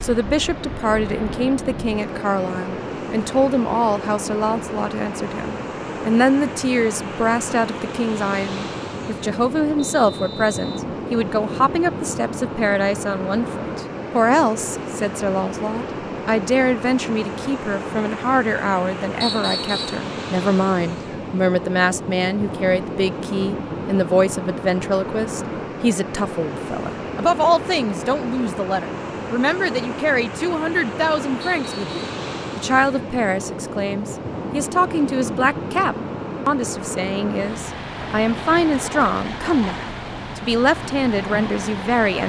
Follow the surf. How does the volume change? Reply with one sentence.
The loudness of the surf stays about the same.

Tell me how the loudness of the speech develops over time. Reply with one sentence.
The loudness of the speech stays about the same.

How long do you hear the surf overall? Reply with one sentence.
You can hear the surf for 42 seconds altogether.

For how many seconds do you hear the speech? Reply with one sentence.
You can hear the speech for 42 seconds altogether.